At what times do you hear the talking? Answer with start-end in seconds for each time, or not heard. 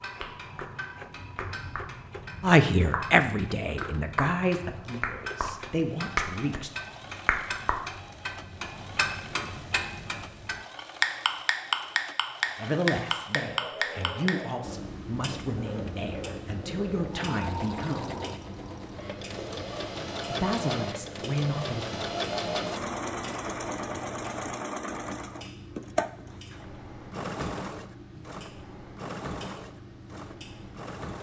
2.4-6.7, 12.6-18.1, 20.2-22.0.